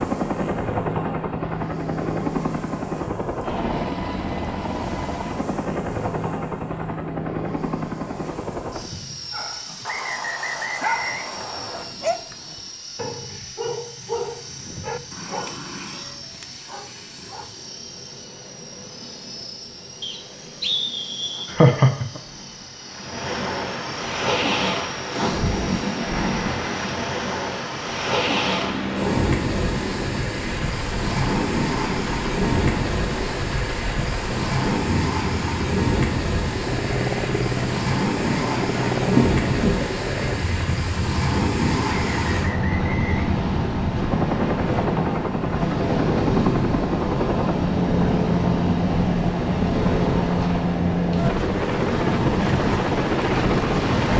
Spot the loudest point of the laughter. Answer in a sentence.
The loudest moment of the laughter is at 22 seconds.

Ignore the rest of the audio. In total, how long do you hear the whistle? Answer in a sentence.
The whistle can be heard for 5 seconds in total.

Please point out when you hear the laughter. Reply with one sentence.
The laughter can be heard from 21.4 to 22.2 s and from 39.1 to 40.0 s.